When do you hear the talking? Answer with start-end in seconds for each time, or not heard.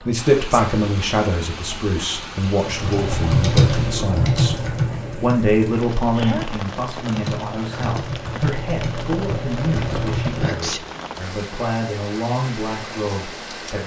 0.1-13.8.